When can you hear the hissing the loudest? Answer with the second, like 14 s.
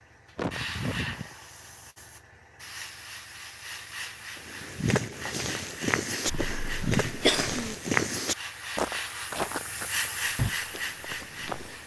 10 s.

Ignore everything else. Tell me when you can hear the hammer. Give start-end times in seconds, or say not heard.
not heard.